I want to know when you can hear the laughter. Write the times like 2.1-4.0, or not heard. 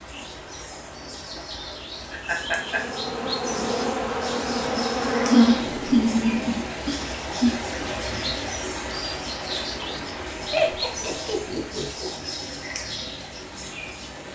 2.1-2.8, 5.3-7.5, 10.5-12.1.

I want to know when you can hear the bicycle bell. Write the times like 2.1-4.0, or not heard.
not heard.